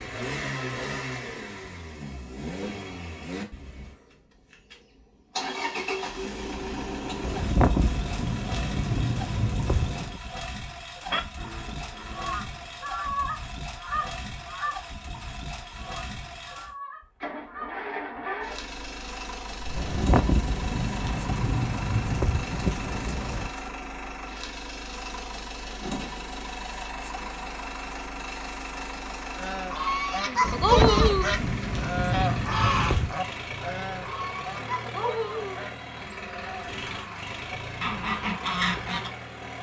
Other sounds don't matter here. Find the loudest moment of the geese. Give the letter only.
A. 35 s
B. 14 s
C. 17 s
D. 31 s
D.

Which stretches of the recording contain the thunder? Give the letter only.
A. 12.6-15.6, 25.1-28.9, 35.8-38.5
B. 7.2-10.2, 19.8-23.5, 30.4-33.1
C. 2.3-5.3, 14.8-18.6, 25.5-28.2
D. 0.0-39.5
B.